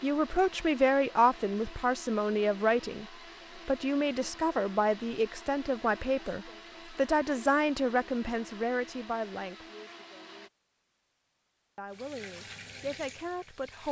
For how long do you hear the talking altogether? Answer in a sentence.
You can hear the talking for 11 seconds altogether.